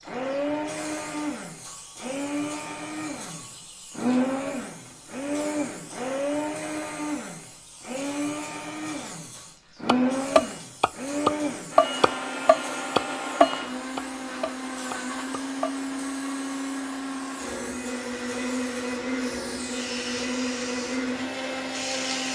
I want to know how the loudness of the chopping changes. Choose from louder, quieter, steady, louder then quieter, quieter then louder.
quieter.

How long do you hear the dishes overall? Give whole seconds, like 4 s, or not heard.
not heard.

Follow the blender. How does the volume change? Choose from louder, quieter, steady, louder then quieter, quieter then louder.
steady.